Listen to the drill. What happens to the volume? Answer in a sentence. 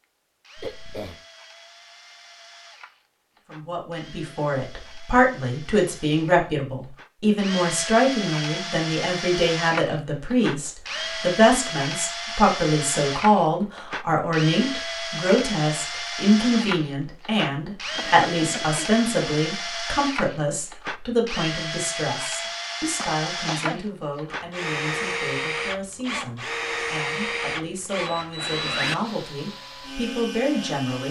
The loudness of the drill goes up.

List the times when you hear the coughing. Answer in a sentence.
The coughing can be heard from 0.6 to 1.2 s, from 17.9 to 18.9 s and from 22.9 to 23.8 s.